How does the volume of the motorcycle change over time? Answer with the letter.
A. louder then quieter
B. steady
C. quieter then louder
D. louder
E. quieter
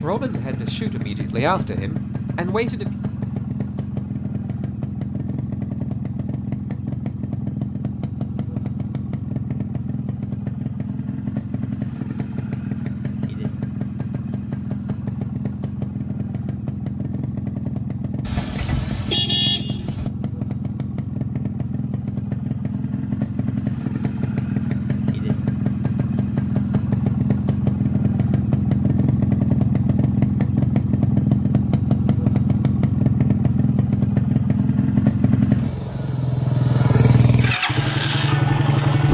D.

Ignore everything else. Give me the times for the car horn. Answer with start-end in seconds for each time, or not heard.
18.2-20.1.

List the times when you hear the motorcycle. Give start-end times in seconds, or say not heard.
0.0-39.0.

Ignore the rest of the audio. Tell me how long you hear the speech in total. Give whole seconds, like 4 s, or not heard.
3 s.